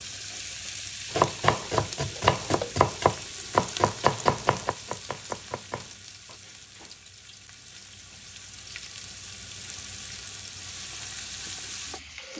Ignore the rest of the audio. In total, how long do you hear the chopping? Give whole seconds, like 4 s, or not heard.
5 s.